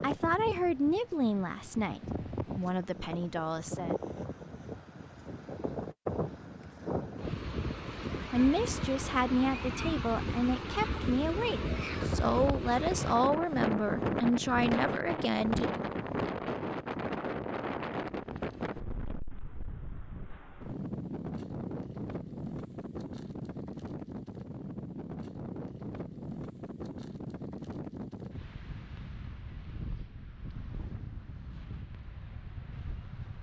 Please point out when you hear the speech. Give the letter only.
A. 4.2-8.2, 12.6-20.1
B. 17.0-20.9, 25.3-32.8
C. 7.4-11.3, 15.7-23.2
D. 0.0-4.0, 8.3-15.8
D.